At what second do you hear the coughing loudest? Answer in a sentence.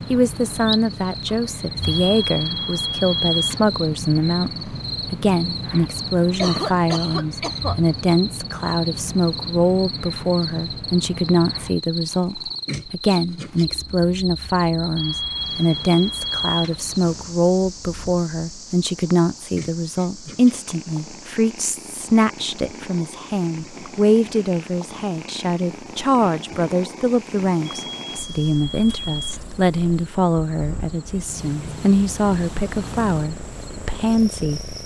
The loudest moment of the coughing is at 7 seconds.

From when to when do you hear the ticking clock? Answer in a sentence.
You can't hear the ticking clock here.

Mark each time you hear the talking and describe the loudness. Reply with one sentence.
You can hear the talking from 0.1 to 34.7 s, at a steady volume.